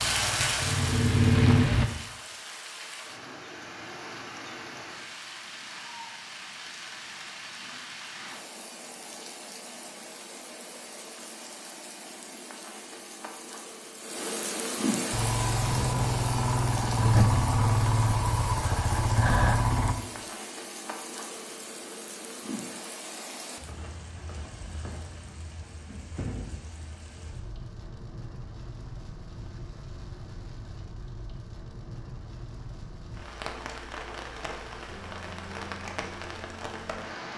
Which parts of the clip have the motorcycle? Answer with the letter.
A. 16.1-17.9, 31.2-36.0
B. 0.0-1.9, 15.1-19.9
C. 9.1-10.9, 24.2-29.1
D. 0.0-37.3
B.